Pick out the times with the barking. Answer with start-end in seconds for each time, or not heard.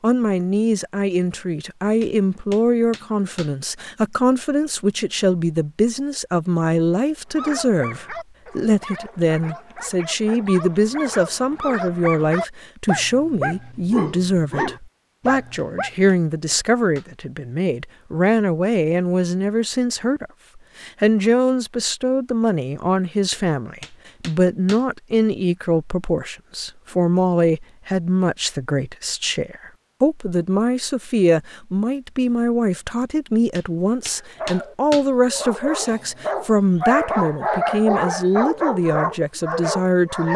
7.3-15.9, 34.1-40.3.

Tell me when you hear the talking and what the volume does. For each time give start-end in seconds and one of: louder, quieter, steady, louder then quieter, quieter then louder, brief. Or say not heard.
0.0-40.3 steady.